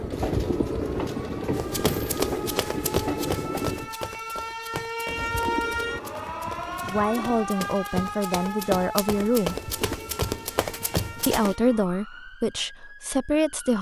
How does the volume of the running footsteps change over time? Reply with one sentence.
The volume of the running footsteps goes down, then up.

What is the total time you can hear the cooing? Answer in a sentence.
The cooing can be heard for 7 seconds in total.